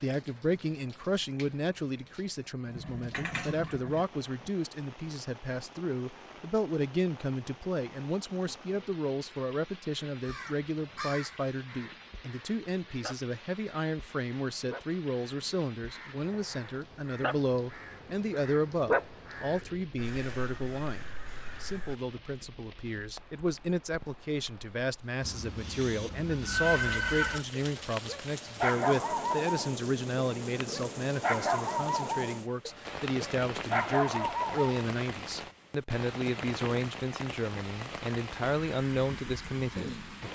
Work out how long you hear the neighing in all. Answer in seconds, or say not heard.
4 s.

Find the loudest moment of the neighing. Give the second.
27 s.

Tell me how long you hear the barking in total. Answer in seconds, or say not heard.
7 s.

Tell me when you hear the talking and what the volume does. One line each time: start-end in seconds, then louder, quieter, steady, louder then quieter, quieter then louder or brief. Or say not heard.
0.0-40.0 steady.